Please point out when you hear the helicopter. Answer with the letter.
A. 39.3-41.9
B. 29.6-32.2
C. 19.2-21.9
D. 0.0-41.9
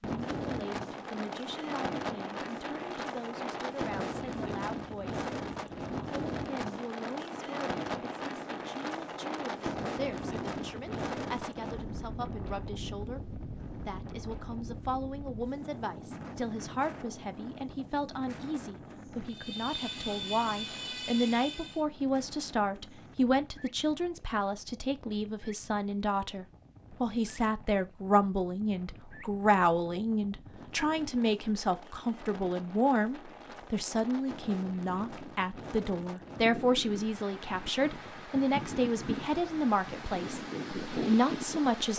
C.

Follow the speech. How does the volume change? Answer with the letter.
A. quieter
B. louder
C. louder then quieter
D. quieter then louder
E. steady
B.